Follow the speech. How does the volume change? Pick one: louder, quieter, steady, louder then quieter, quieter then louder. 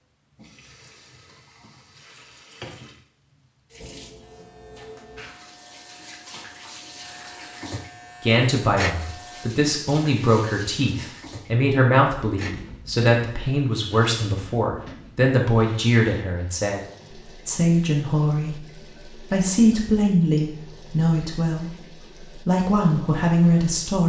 steady.